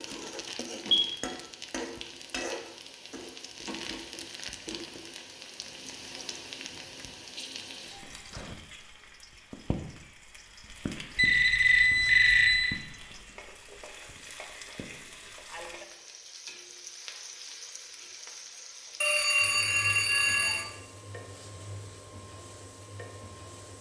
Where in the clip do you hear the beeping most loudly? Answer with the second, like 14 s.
12 s.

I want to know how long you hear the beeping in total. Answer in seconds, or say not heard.
4 s.